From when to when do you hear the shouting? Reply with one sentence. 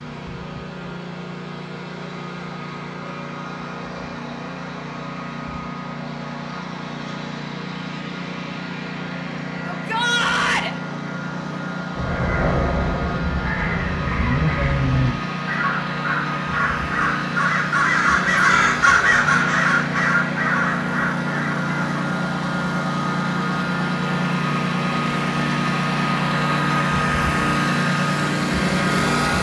The shouting can be heard from 9.7 to 10.7 s.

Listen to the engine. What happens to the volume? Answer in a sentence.
The loudness of the engine goes up.